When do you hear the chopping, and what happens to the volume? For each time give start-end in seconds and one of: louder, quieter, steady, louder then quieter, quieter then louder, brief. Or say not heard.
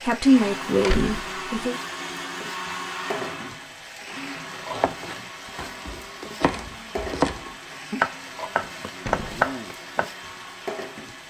4.5-10.1 louder.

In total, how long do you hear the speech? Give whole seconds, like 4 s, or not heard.
2 s.